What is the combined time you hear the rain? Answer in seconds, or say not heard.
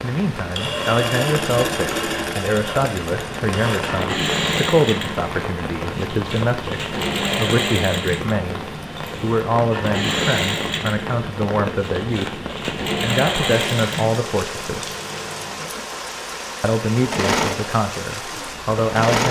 19 s.